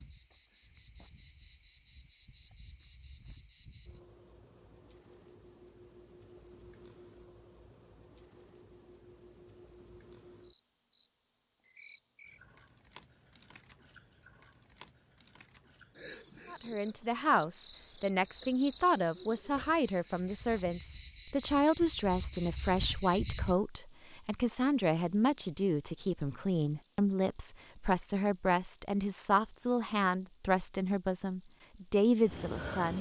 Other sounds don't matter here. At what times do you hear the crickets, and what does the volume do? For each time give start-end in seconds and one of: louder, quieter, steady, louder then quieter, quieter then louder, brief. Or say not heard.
0.0-32.9 louder.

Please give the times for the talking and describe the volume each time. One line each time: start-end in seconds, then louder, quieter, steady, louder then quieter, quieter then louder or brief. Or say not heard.
16.5-32.9 steady.